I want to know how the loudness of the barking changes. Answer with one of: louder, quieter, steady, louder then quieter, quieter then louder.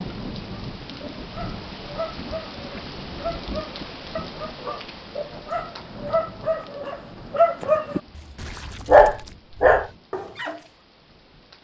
louder.